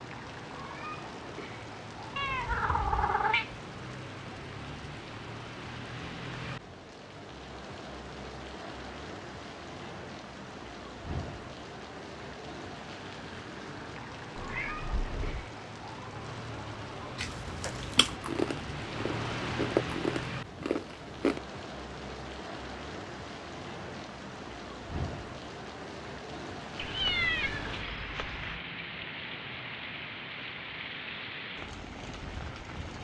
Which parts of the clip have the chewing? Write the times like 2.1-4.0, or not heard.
17.1-21.4.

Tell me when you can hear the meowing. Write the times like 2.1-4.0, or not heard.
2.1-3.5, 14.3-15.5, 26.8-28.6.